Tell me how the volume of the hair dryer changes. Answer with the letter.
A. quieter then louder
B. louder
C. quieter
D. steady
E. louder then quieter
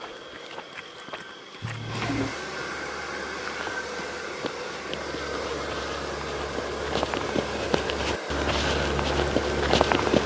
B.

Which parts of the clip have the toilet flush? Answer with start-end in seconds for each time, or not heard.
1.6-2.4.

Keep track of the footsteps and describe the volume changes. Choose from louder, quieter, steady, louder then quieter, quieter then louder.
louder.